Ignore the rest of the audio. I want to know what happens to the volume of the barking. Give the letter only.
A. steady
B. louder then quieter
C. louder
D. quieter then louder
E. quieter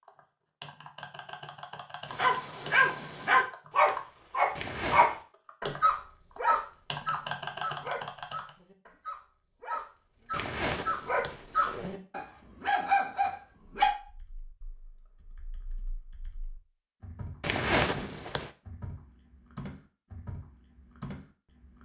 D.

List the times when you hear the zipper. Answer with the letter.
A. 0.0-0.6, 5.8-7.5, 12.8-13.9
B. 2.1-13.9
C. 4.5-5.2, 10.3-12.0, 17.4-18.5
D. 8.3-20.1
C.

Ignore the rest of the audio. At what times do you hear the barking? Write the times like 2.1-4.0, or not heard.
2.1-13.9.